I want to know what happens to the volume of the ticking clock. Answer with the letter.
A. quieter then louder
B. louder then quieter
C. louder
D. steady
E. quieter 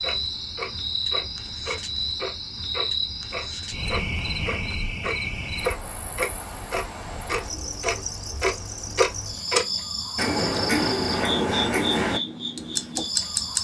C.